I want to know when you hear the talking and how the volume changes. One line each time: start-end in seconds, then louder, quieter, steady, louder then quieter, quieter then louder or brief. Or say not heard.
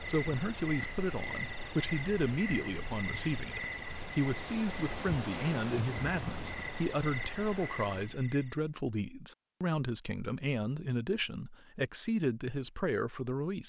0.1-13.6 steady.